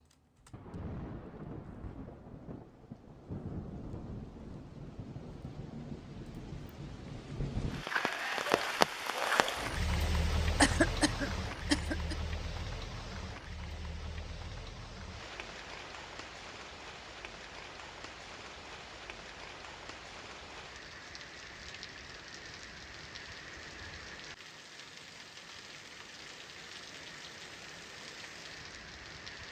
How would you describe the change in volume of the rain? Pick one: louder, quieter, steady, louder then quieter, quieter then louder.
louder then quieter.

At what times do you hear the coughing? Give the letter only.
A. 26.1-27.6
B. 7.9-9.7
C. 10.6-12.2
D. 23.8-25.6
C.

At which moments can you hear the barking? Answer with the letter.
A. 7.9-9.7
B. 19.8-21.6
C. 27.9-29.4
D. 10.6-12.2
A.